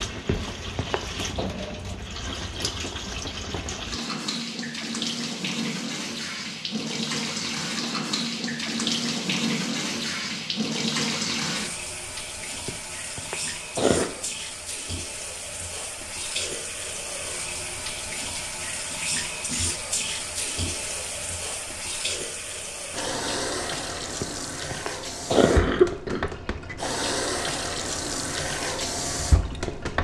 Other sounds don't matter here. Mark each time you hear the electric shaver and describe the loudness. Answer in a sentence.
You can't hear the electric shaver here.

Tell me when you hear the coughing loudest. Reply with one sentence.
The volume of the coughing peaks at 26 seconds.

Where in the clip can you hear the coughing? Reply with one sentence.
You can hear the coughing from 0.2 to 1.5 s, from 12.7 to 14.1 s and from 24.2 to 26.3 s.